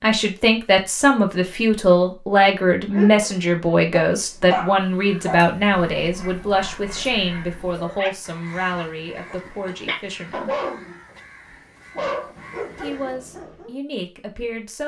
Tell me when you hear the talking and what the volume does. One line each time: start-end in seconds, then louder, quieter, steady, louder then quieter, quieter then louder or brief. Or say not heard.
0.0-10.6 quieter
12.8-14.8 brief.